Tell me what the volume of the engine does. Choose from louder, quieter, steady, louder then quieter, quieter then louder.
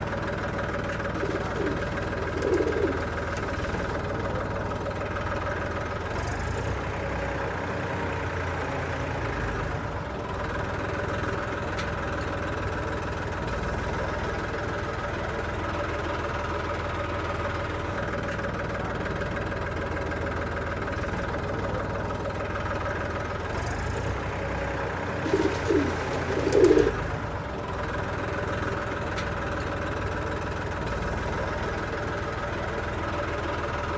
steady.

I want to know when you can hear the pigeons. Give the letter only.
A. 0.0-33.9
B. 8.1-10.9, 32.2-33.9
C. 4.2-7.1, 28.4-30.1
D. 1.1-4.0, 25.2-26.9
D.